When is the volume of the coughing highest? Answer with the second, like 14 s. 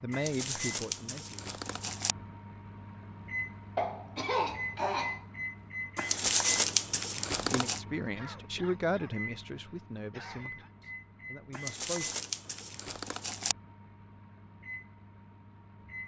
4 s.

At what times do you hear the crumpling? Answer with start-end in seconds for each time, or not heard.
0.1-2.1, 6.0-7.8, 11.5-13.6.